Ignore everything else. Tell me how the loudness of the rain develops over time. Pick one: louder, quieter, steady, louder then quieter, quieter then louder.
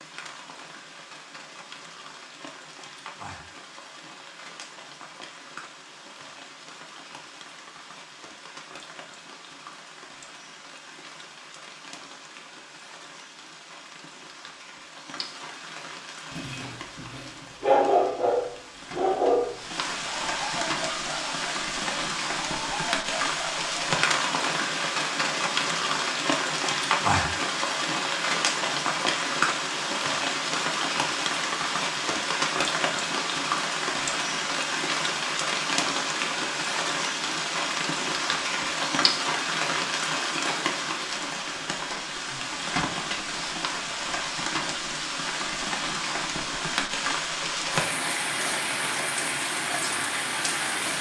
louder.